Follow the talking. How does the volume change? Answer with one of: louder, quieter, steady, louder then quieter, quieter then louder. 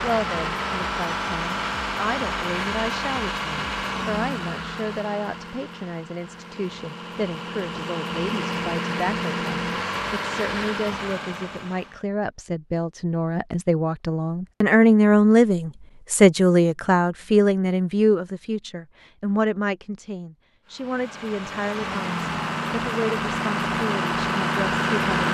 louder then quieter.